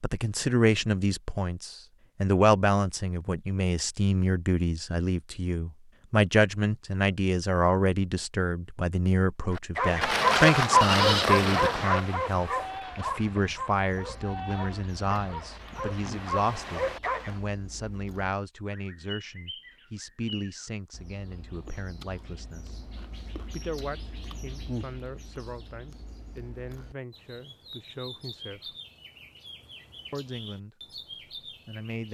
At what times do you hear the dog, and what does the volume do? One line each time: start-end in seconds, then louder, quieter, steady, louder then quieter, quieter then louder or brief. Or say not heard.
9.8-17.4 quieter then louder.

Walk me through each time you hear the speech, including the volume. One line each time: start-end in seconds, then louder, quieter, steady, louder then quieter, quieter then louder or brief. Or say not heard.
0.0-22.8 quieter
23.5-28.8 steady
30.1-32.0 brief.